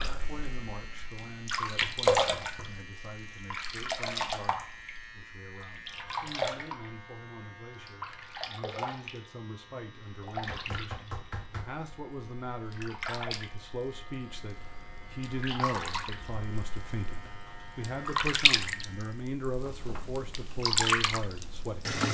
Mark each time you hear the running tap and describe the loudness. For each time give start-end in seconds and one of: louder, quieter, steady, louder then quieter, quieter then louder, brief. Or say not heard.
0.0-22.0 quieter then louder.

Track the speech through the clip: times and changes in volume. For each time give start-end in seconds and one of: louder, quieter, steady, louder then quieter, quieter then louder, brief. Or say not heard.
0.1-22.0 louder.